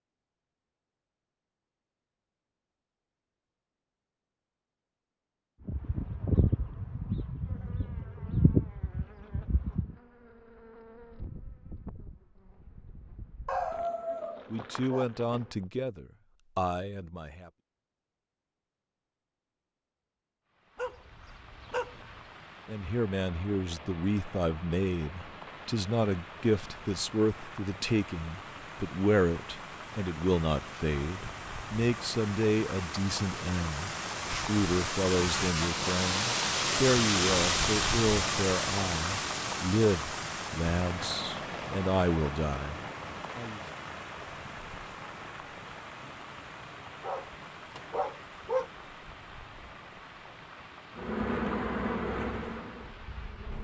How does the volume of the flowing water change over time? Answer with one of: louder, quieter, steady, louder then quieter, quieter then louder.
louder then quieter.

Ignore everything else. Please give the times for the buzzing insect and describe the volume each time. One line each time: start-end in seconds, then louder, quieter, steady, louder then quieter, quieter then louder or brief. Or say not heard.
5.7-15.7 quieter
51.0-53.5 brief.